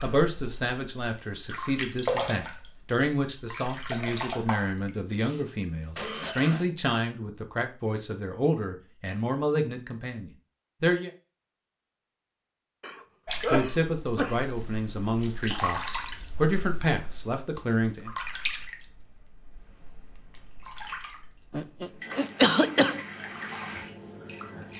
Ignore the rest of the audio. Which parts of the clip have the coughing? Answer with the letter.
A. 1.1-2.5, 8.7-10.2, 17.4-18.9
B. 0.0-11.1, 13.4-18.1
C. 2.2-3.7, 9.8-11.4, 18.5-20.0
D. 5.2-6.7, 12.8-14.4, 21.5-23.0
D.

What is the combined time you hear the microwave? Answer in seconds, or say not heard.
not heard.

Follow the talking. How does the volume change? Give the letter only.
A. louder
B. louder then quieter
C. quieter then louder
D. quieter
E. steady
E.